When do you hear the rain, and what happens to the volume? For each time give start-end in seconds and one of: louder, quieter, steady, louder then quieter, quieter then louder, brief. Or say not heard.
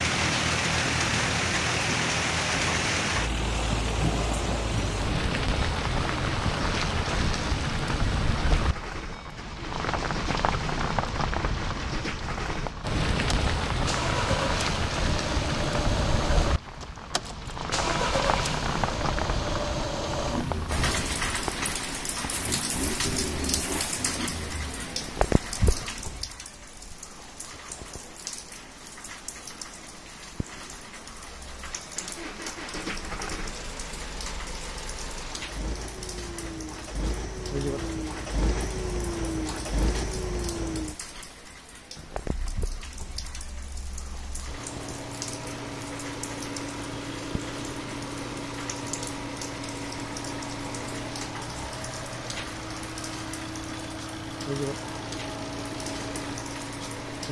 0.0-57.2 quieter.